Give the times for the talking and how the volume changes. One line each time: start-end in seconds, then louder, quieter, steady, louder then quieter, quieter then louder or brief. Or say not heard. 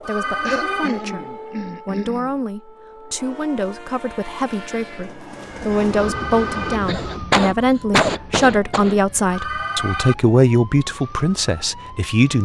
0.0-12.4 louder.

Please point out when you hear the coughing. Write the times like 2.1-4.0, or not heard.
0.5-2.4, 6.8-8.9.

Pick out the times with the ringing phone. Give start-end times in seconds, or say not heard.
0.0-0.9, 5.9-6.8, 9.3-10.2.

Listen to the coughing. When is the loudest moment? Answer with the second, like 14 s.
8 s.